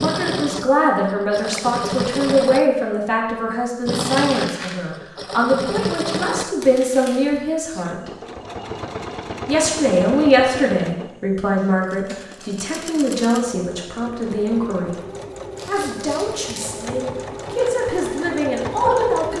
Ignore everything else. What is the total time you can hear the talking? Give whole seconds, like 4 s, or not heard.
17 s.